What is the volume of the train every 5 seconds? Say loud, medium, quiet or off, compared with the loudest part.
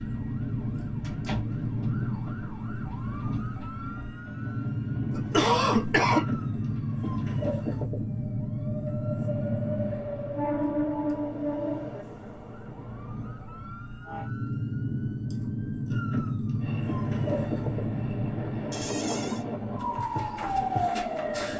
medium, medium, loud, loud, medium.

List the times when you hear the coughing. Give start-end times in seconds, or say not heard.
5.1-6.2.